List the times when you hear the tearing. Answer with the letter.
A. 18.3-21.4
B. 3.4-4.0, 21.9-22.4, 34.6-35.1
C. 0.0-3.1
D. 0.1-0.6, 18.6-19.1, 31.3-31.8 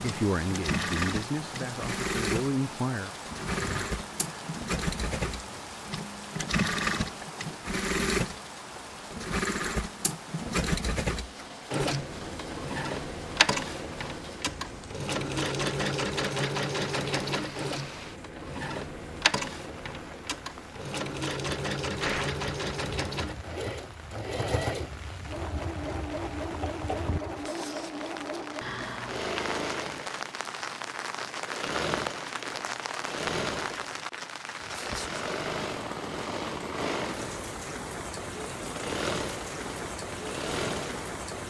B.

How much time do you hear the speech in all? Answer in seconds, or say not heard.
3 s.